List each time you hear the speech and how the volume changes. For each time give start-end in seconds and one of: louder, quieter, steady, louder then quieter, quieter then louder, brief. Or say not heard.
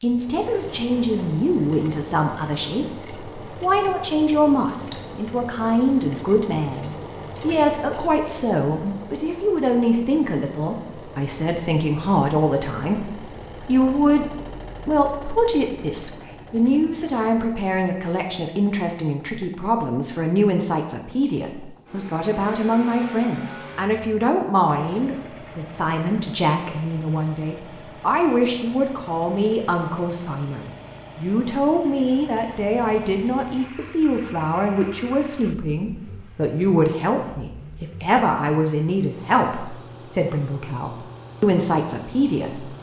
0.0-14.2 steady
14.8-42.6 steady.